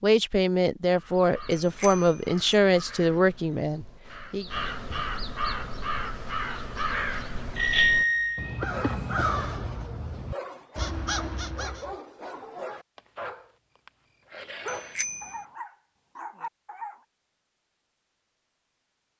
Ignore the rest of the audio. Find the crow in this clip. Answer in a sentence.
The crow can be heard from 0.8 to 11.9 s.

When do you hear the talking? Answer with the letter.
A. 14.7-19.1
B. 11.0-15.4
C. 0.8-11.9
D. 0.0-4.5
D.